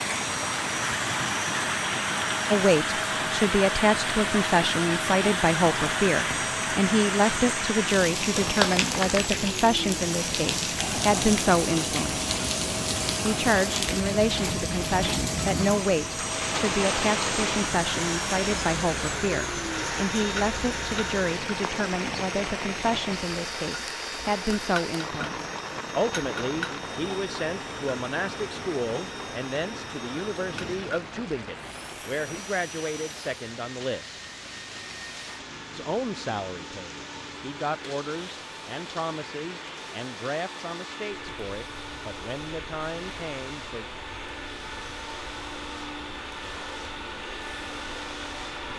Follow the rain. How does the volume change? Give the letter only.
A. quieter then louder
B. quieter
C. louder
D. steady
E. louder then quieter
B.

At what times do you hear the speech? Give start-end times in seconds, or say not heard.
2.5-12.2, 13.2-34.2, 35.7-43.9.